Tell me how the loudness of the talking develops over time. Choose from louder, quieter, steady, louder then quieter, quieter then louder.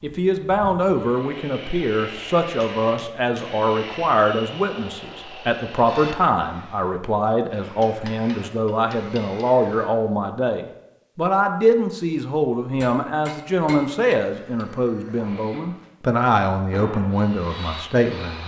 steady.